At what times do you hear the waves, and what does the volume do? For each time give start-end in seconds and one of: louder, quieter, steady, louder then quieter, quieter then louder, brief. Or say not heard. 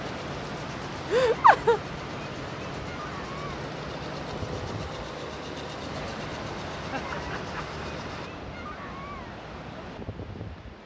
0.0-10.8 steady.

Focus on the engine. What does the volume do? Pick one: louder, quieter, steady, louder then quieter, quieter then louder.
steady.